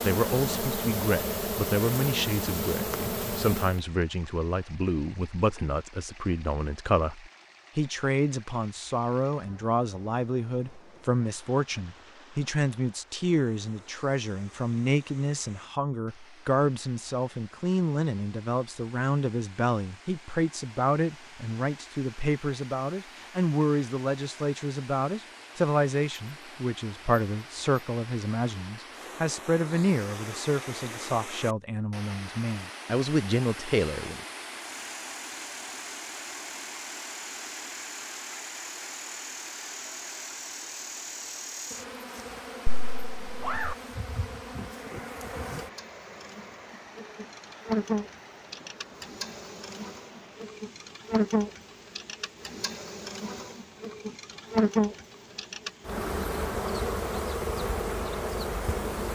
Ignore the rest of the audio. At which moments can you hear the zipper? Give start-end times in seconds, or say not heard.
42.6-43.8.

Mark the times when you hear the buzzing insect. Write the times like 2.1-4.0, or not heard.
0.0-3.8, 34.6-59.0.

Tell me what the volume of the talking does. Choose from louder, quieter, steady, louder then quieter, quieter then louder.
steady.